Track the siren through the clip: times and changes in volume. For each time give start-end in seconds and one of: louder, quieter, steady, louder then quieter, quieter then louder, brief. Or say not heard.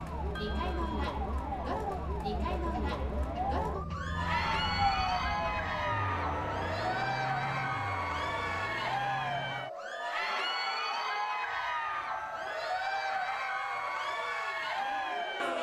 0.0-15.5 louder then quieter.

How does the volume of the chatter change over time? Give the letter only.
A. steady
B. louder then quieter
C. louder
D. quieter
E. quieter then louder
A.